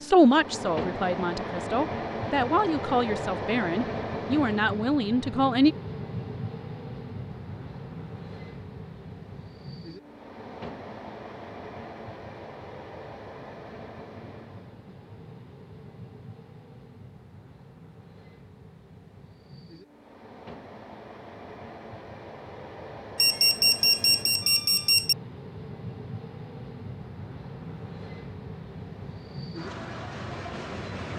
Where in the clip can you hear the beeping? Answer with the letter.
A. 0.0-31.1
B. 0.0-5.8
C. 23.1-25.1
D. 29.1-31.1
C.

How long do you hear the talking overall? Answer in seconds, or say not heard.
6 s.